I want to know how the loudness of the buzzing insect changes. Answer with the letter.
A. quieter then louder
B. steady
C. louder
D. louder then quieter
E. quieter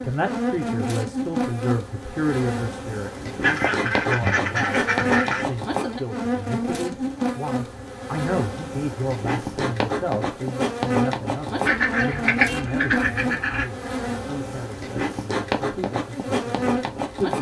B.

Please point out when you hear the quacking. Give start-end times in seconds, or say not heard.
3.4-5.5, 11.7-13.7.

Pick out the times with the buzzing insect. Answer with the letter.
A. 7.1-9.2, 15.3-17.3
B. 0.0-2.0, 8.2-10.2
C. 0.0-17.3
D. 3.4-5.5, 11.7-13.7
C.